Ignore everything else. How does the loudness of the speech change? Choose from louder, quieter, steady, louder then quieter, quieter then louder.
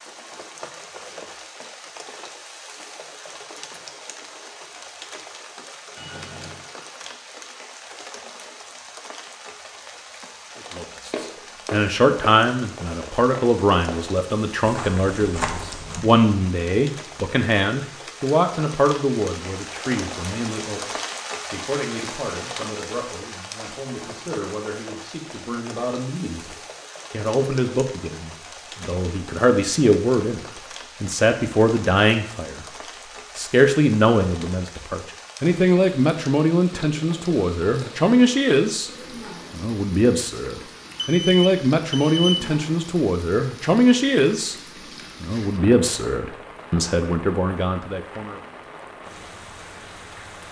quieter then louder.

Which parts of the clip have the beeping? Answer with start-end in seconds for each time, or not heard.
6.0-6.7, 27.5-28.1, 41.0-42.5.